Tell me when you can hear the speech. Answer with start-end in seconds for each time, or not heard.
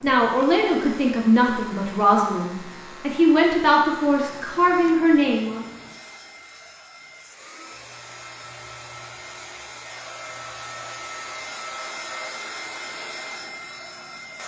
0.0-5.7.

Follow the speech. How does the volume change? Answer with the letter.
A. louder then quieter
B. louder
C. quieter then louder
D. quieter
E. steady
E.